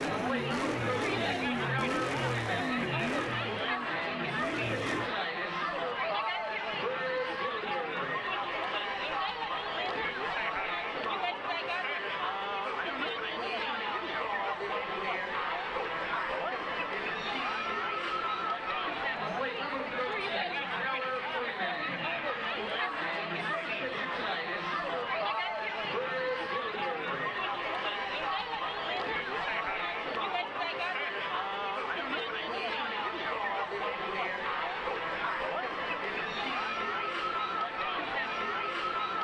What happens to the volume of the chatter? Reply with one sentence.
The loudness of the chatter stays about the same.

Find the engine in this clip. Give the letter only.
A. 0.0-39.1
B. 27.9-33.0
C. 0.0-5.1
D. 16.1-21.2
C.